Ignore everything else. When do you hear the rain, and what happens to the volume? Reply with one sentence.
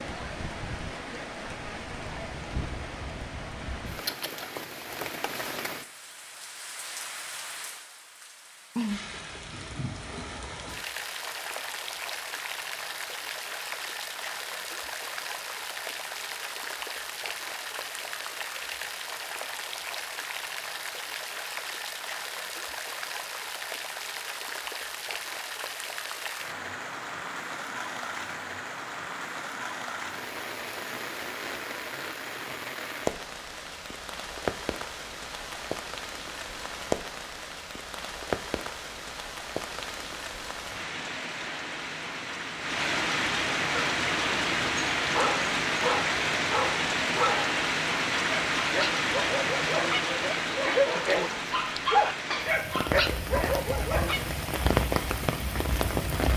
You can hear the rain from 0.0 to 56.3 s, getting louder.